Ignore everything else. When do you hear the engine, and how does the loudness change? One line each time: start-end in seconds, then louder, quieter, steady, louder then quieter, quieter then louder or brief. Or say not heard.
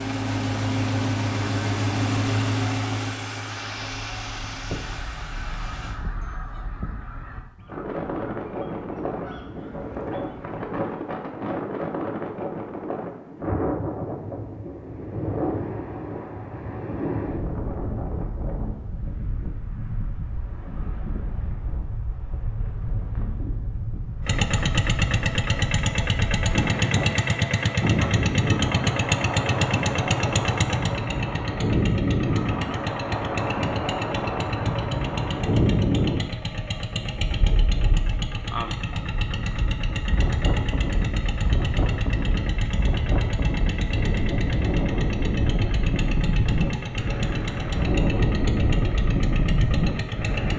0.0-6.0 quieter
24.2-50.5 quieter.